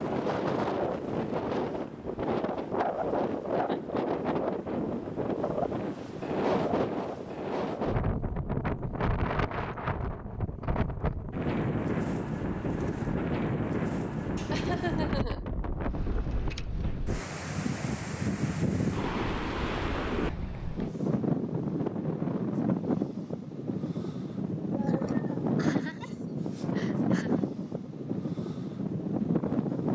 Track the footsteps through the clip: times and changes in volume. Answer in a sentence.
You can't hear the footsteps here.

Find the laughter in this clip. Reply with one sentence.
You can hear the laughter from 3.6 to 4.3 s, from 14.3 to 15.4 s and from 24.7 to 27.4 s.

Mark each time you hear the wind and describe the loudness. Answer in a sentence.
You can hear the wind from 0.0 to 29.8 s, at a steady volume.